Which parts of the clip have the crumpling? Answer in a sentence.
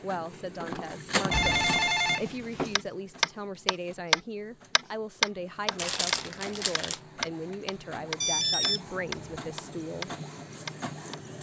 You can hear the crumpling from 5.8 to 7.0 s.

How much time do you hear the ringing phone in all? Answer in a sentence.
You can hear the ringing phone for 3 seconds altogether.